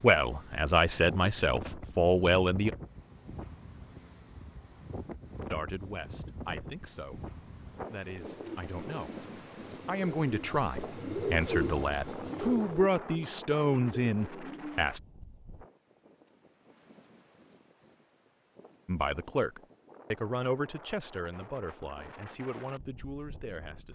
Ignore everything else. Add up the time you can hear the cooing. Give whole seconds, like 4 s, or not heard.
7 s.